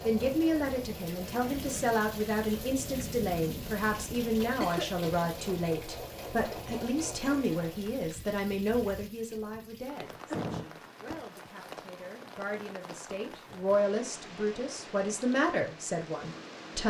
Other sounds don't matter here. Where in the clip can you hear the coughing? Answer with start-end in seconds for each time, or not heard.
4.6-5.1, 10.3-11.2.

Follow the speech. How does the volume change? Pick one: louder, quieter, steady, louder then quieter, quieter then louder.
quieter then louder.